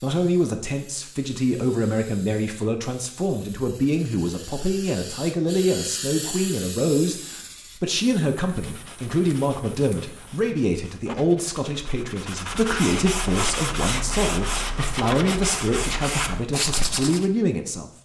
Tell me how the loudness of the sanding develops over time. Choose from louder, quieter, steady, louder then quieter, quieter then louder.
louder.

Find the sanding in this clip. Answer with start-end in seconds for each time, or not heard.
8.4-17.2.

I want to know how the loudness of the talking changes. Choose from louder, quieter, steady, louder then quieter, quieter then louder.
steady.